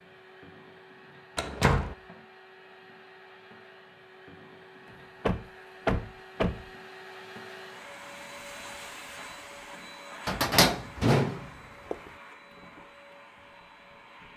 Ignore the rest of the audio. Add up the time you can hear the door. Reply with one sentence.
The door can be heard for 4 seconds in total.